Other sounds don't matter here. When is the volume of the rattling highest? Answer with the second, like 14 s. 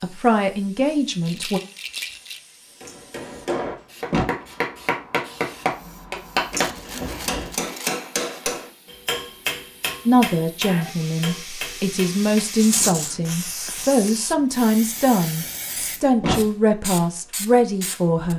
13 s.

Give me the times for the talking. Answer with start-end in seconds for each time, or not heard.
0.0-1.6, 10.1-18.3.